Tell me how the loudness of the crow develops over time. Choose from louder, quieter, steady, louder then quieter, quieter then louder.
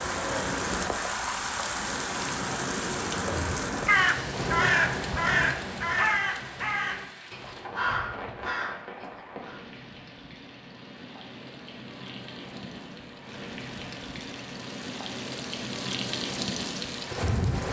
quieter.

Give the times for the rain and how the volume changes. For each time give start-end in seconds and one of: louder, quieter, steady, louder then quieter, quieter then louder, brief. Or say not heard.
0.0-17.6 quieter then louder.